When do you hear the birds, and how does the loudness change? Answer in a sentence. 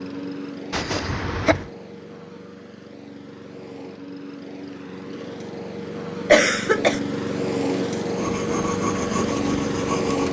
You can't hear the birds here.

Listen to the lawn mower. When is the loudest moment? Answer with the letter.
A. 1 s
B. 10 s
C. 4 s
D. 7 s
B.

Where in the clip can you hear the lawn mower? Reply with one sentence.
You can hear the lawn mower from 0.0 to 10.2 s.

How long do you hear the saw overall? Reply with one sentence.
You can hear the saw for 2 seconds altogether.